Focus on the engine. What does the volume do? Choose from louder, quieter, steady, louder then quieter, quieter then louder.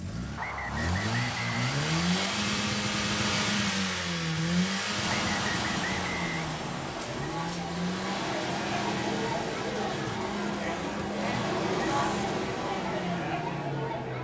quieter.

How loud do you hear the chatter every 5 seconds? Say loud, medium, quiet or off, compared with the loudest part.
off, loud, loud.